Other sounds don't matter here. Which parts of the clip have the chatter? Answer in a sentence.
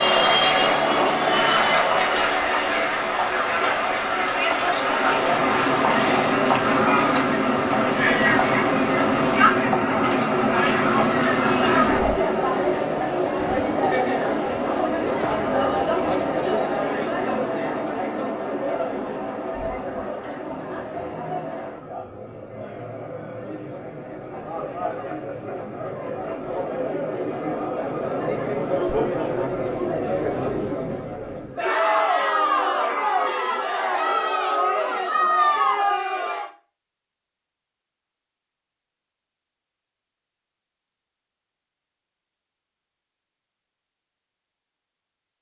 The chatter can be heard from 0.0 to 36.5 s.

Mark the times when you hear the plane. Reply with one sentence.
The plane can be heard from 0.0 to 12.2 s.